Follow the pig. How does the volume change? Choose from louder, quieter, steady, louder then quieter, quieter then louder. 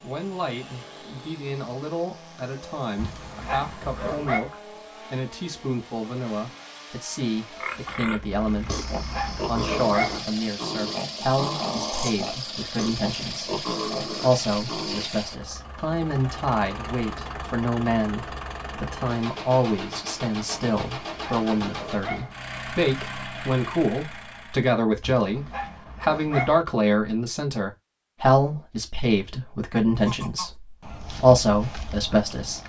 steady.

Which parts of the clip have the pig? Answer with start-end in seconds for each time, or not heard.
7.5-15.1.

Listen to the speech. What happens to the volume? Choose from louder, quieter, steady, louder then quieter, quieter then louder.
louder.